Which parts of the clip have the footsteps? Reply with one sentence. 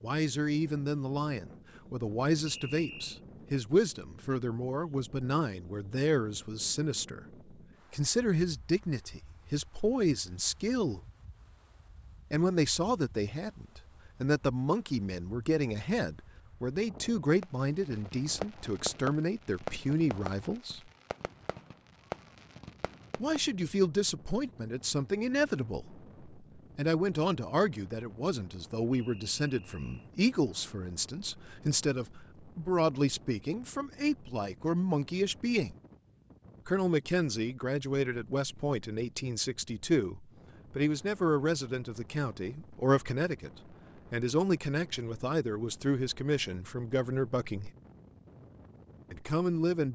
You can't hear the footsteps here.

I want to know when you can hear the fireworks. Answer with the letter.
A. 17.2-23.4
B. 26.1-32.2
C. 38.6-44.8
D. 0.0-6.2
A.